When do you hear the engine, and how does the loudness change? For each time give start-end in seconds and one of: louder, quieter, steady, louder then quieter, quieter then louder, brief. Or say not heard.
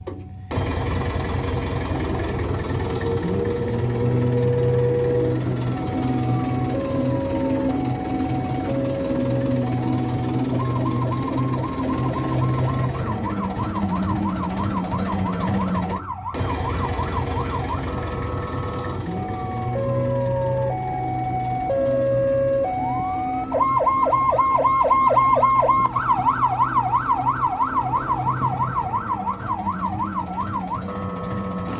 0.0-31.7 quieter.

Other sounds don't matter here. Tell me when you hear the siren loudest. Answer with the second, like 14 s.
25 s.